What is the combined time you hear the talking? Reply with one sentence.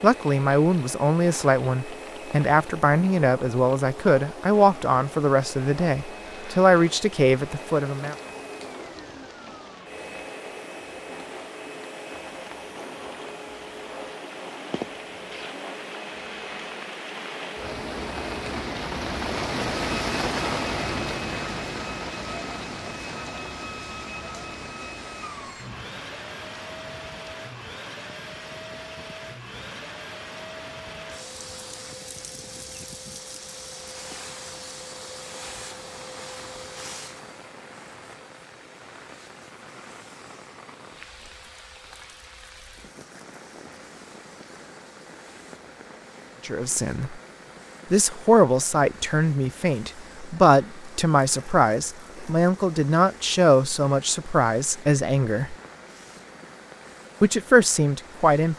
You can hear the talking for 18 seconds altogether.